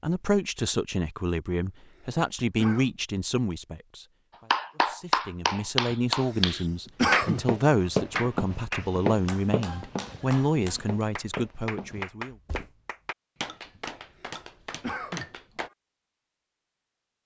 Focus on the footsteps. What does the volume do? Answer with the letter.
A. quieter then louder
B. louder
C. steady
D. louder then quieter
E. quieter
A.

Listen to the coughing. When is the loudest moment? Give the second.
7 s.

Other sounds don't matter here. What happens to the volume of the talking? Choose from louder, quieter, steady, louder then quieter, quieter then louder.
steady.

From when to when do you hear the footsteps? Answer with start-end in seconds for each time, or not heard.
7.2-12.7.